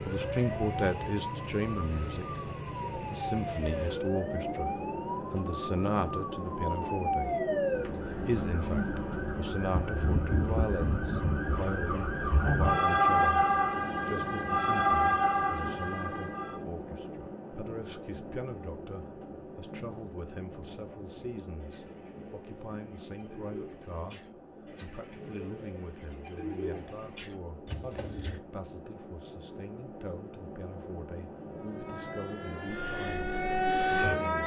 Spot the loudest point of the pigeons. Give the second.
27 s.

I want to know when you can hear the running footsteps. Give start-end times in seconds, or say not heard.
not heard.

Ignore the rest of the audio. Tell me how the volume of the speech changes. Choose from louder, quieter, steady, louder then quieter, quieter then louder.
quieter.